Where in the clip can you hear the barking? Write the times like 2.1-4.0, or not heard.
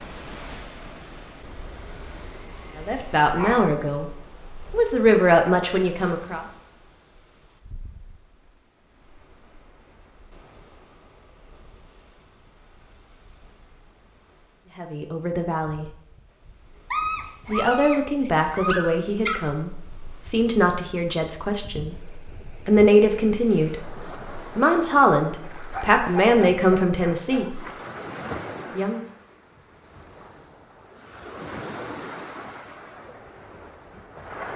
1.7-3.7, 16.9-19.5, 25.7-27.4.